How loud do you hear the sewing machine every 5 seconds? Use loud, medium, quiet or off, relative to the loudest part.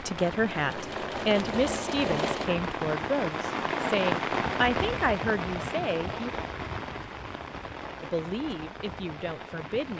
loud, off.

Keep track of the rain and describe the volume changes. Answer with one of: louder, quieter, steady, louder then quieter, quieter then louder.
louder then quieter.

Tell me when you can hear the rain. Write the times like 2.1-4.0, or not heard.
0.0-9.9.